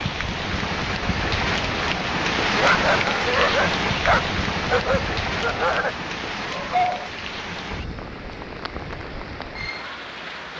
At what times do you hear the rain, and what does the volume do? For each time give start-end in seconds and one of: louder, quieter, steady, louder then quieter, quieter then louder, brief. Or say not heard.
0.0-10.5 quieter.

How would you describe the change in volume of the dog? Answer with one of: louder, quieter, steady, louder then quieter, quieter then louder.
quieter.